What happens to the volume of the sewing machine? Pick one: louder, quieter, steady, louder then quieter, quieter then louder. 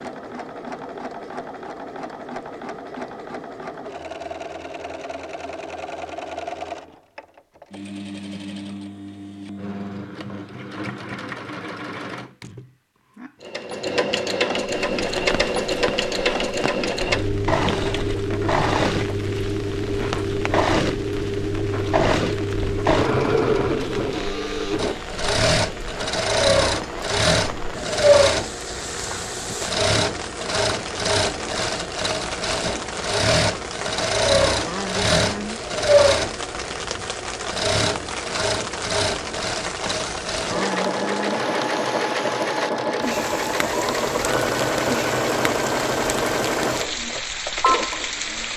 louder.